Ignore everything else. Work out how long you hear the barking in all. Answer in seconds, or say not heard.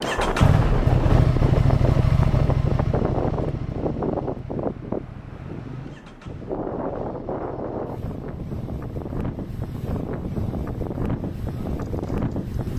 not heard.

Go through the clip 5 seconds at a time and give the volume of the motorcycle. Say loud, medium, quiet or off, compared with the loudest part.
loud, quiet, quiet.